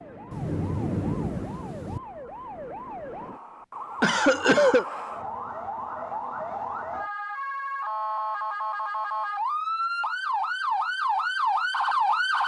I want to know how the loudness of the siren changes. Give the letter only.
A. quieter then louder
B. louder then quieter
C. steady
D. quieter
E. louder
E.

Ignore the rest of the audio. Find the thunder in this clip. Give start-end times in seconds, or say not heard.
0.3-2.0.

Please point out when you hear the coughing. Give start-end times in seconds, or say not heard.
4.0-4.8.